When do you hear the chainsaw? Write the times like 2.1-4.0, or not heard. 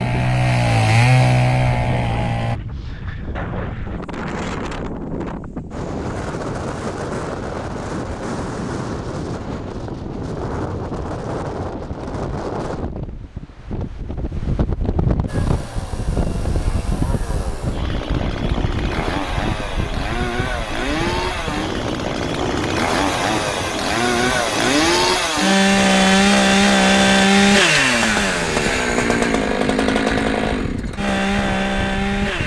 0.0-2.6, 15.2-32.4.